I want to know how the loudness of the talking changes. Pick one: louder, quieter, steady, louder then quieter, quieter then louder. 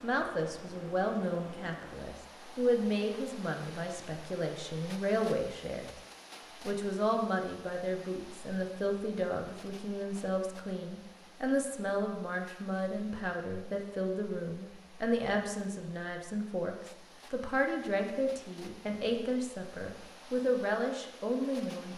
steady.